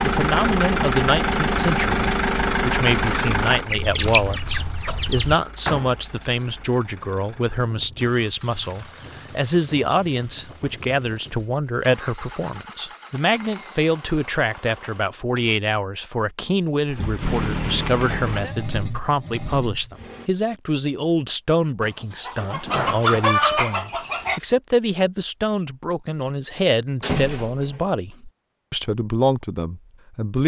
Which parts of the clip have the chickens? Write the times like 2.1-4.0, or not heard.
3.6-5.4, 21.8-24.4.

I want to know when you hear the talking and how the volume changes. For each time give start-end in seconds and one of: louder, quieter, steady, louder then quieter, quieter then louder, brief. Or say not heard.
0.0-30.4 steady.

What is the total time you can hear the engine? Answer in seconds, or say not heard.
19 s.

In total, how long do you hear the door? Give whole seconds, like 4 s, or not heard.
4 s.